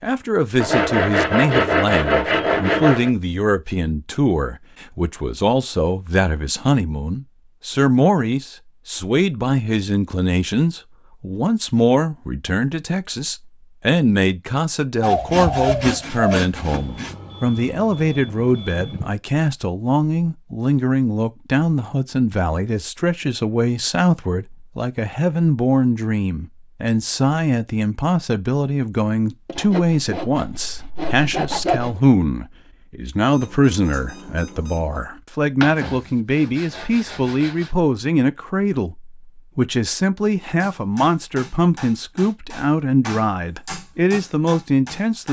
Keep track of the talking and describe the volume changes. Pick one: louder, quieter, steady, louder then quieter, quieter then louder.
steady.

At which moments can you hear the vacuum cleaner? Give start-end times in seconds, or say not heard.
not heard.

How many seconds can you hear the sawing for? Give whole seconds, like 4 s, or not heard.
9 s.